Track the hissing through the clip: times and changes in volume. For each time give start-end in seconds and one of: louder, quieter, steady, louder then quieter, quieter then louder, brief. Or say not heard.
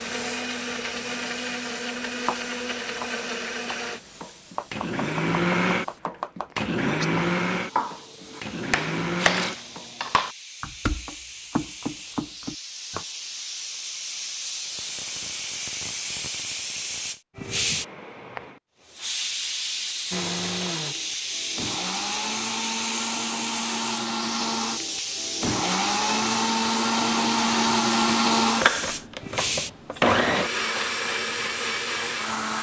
0.0-32.5 louder.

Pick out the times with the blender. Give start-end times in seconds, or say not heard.
0.0-9.8, 20.1-32.5.